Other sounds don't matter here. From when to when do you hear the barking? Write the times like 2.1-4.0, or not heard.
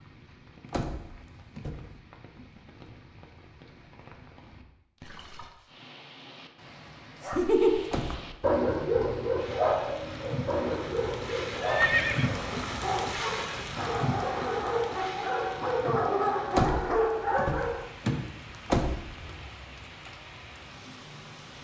7.2-17.9.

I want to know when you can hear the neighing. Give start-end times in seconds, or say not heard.
11.6-12.6.